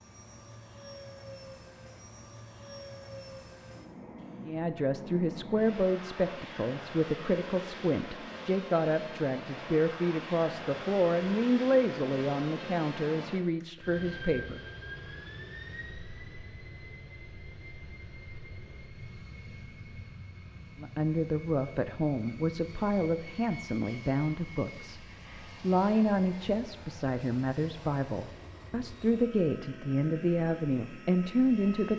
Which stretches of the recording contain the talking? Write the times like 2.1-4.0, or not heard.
4.5-14.6, 20.8-31.9.